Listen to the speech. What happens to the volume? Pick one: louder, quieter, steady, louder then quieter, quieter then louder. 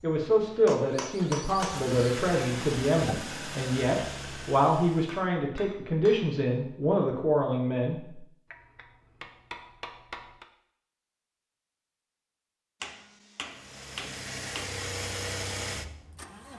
steady.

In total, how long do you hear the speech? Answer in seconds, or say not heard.
8 s.